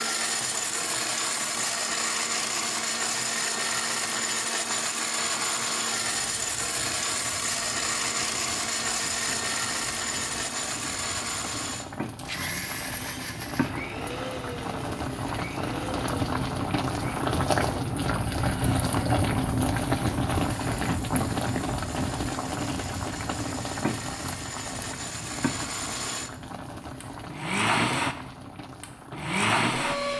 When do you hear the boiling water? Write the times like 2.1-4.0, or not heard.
0.1-30.1.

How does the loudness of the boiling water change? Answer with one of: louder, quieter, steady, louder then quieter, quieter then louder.
louder then quieter.